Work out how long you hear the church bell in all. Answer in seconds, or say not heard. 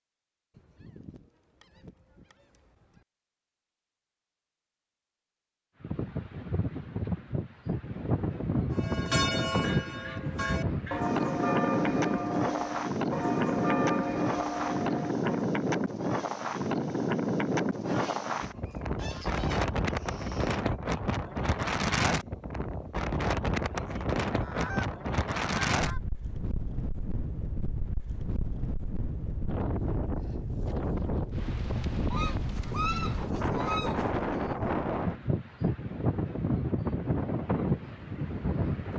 7 s.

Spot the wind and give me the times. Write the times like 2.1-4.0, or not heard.
5.8-38.9.